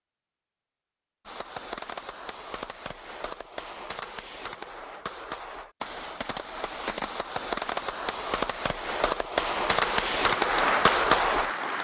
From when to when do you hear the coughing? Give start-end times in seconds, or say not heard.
not heard.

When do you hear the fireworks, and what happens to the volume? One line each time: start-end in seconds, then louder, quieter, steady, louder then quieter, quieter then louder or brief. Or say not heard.
1.2-11.5 louder.